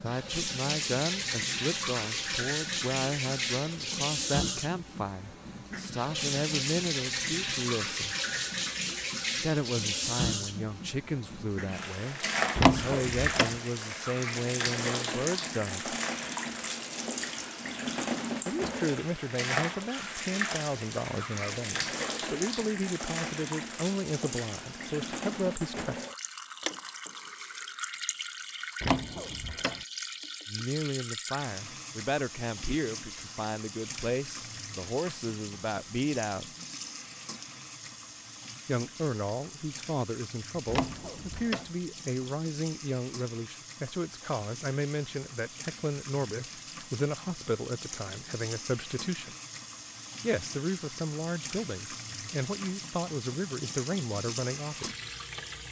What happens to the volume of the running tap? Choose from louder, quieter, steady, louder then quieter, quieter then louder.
quieter.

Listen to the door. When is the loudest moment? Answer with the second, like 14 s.
13 s.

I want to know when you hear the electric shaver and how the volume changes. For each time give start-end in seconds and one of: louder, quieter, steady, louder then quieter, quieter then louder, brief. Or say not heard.
not heard.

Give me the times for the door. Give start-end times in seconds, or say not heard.
12.6-13.6, 28.8-29.8, 40.6-41.7.